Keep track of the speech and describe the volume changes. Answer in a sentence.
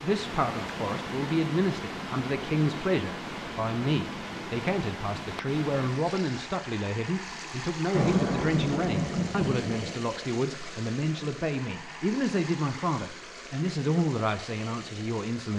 The volume of the speech stays about the same.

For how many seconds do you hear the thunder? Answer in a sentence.
The thunder can be heard for 2 seconds in total.